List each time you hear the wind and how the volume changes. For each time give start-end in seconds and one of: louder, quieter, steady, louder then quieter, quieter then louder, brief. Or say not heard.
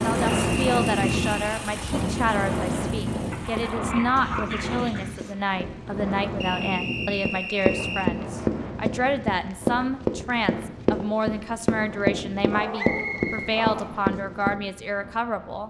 0.0-15.6 quieter.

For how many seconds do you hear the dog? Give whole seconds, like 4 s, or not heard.
3 s.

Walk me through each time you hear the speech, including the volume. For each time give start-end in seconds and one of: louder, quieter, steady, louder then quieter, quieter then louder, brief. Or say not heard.
0.0-15.6 steady.